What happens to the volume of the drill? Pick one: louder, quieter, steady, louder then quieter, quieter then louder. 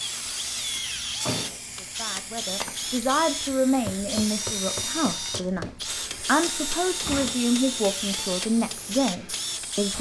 steady.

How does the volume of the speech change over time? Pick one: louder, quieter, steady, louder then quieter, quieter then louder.
steady.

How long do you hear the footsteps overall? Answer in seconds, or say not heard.
not heard.